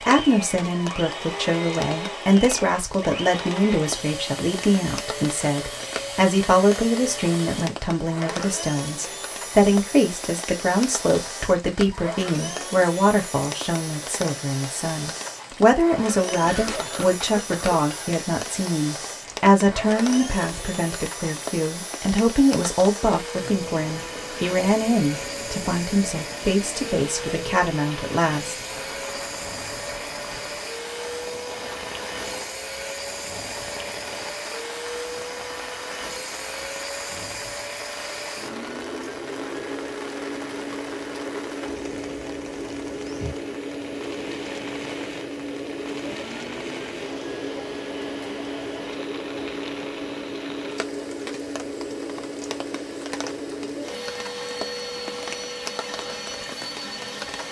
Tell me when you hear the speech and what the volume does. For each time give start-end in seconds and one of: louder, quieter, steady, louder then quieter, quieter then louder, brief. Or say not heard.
0.0-28.6 steady.